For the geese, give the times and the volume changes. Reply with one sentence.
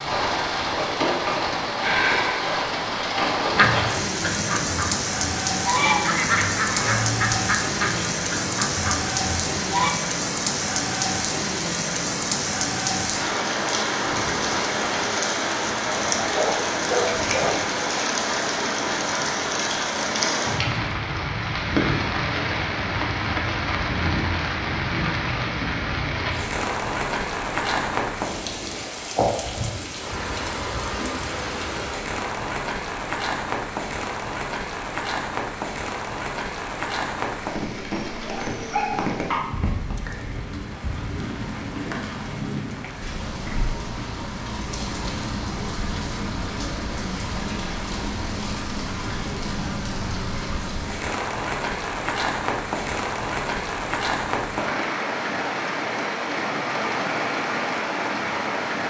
The geese can be heard from 3.5 to 9.9 s, getting louder then quieter.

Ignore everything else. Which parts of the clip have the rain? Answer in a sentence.
The rain can be heard from 0.0 to 58.8 s.